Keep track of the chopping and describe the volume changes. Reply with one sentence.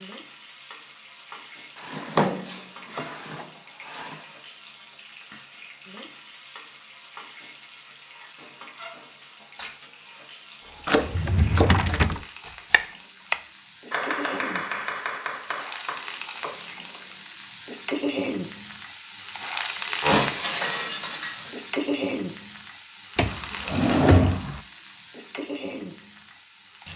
The loudness of the chopping goes down.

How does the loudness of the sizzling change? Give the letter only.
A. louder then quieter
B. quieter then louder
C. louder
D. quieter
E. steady
C.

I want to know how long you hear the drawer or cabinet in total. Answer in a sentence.
You can hear the drawer or cabinet for 5 seconds altogether.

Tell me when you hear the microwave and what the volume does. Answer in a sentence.
You can't hear the microwave here.